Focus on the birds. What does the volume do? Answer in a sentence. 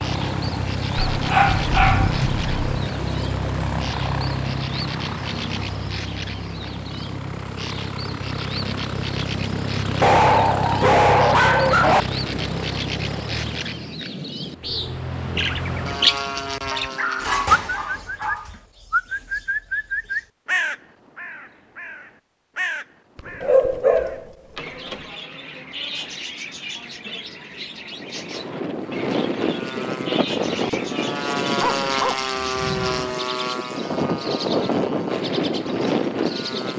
The loudness of the birds goes up, then down.